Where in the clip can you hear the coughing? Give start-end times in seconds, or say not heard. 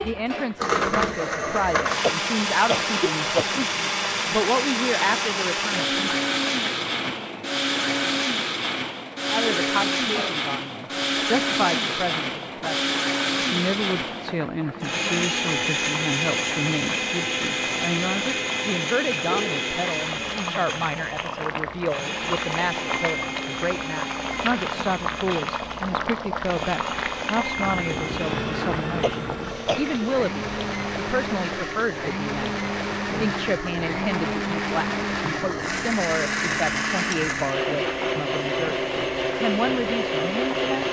2.0-3.7, 29.0-30.0.